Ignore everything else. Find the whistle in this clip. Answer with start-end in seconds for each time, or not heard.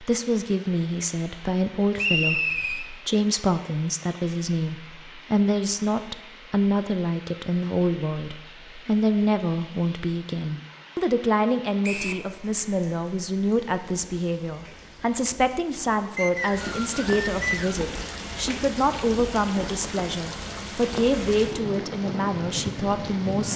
1.9-2.9, 11.8-12.2, 16.1-17.8.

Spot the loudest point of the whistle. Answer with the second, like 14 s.
2 s.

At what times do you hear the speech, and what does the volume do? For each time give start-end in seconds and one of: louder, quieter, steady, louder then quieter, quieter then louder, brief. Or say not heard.
0.0-23.5 steady.